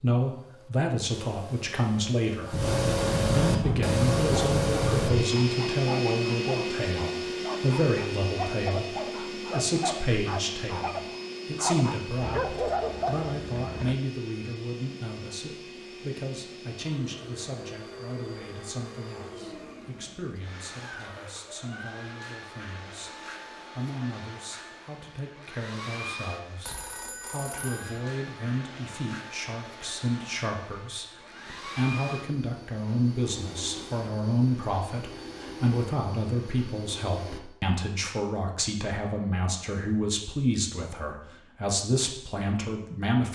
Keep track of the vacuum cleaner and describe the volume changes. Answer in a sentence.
The volume of the vacuum cleaner goes down.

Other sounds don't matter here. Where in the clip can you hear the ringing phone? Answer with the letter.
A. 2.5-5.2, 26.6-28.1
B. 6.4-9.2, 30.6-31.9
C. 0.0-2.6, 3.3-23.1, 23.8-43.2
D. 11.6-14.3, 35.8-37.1
A.